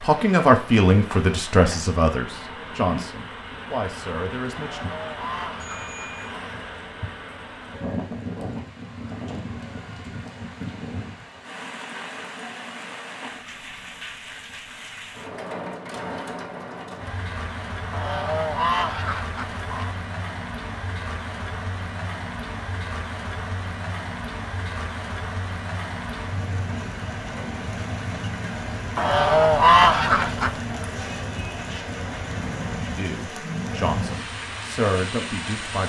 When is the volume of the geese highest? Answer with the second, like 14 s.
30 s.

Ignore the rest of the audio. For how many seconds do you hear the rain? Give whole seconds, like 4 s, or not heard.
36 s.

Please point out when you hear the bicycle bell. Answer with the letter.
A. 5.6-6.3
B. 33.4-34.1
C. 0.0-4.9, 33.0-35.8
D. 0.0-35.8
A.